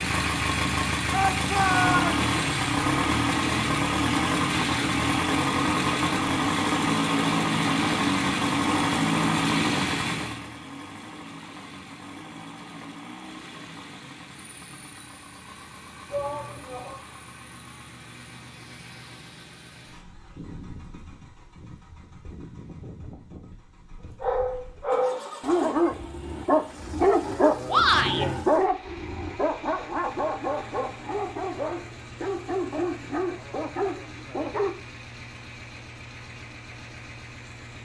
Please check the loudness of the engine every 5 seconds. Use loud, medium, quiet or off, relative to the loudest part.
loud, loud, quiet, quiet, quiet, quiet, quiet, quiet.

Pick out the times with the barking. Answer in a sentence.
The barking can be heard from 24.2 to 34.8 s.